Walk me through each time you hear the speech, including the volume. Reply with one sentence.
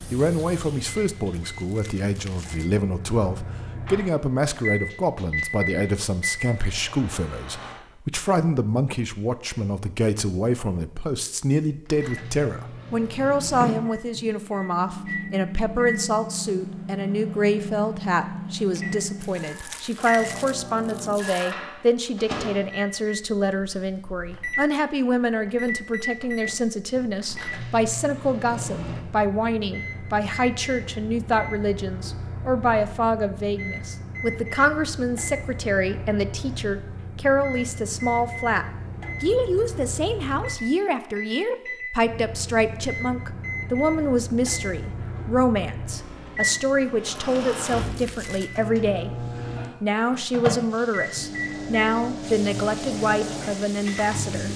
The speech can be heard from 0.1 to 54.5 s, at a steady volume.